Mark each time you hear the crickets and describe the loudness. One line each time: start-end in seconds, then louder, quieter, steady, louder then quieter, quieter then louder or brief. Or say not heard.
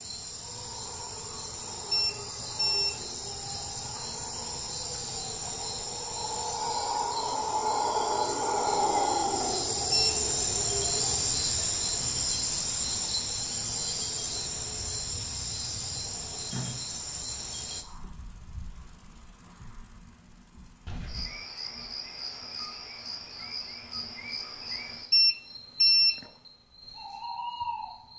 0.0-28.1 louder then quieter.